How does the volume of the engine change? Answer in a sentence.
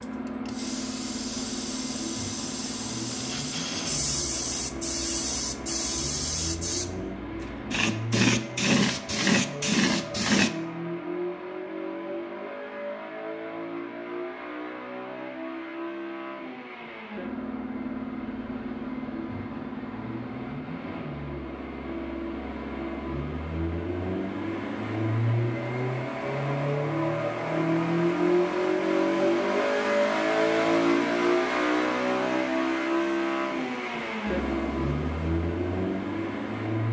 The volume of the engine goes up.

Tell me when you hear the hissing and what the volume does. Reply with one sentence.
The hissing can be heard from 0.0 to 10.5 s, getting louder.